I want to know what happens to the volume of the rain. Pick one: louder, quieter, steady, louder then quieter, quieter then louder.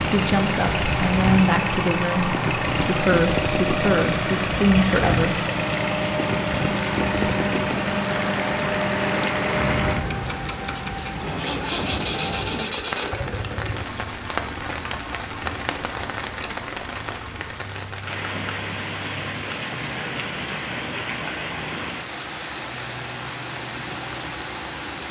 steady.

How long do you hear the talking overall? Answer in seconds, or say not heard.
5 s.